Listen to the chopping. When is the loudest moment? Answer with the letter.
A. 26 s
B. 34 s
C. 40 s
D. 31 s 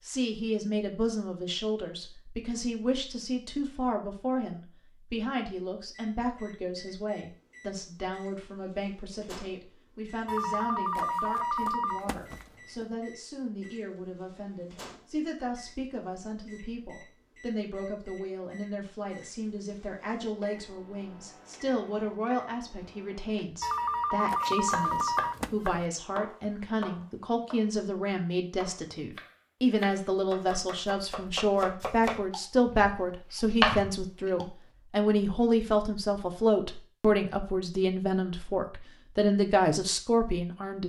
B.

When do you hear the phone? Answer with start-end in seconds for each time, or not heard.
10.2-12.8, 23.6-25.5.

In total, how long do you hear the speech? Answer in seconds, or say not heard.
41 s.